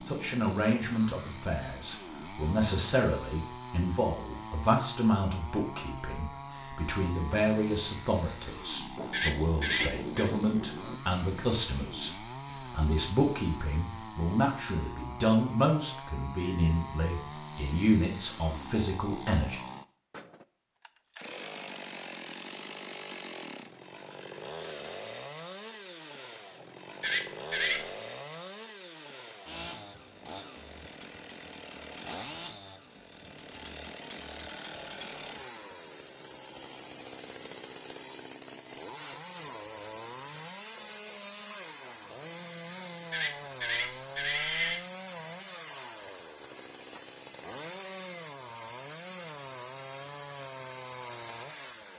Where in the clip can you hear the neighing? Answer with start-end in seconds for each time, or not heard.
9.1-10.3, 27.0-27.9, 43.1-44.8.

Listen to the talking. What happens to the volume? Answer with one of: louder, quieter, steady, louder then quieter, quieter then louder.
steady.